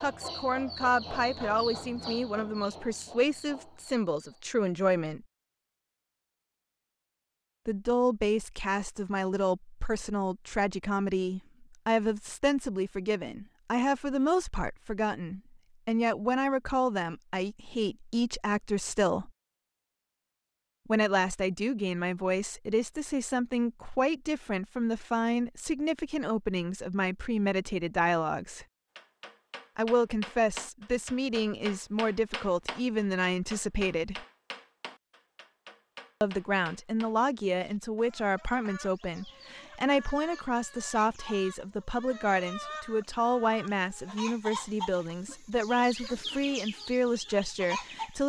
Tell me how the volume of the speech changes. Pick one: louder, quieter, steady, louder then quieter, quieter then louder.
steady.